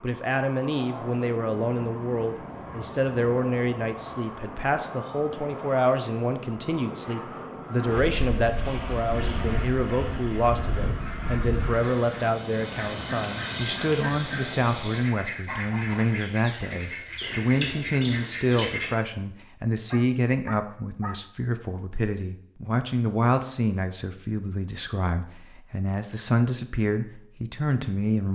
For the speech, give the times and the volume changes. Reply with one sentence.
You can hear the speech from 0.0 to 28.3 s, at a steady volume.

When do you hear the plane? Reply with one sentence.
The plane can be heard from 0.0 to 15.1 s.